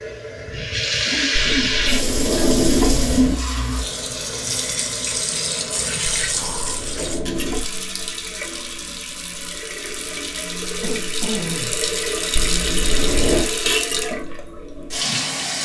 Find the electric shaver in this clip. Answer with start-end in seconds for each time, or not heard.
not heard.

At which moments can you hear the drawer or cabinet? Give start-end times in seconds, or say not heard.
1.6-3.4, 6.1-7.7, 12.3-13.4.